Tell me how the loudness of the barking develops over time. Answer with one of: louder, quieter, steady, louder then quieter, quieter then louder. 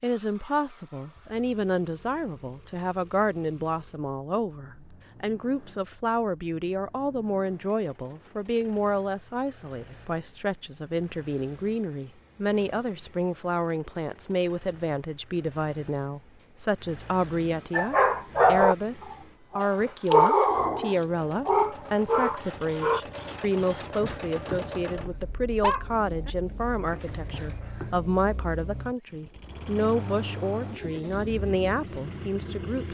quieter then louder.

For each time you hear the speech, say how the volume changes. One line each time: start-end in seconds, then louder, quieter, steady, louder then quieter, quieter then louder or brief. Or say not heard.
0.0-32.8 steady.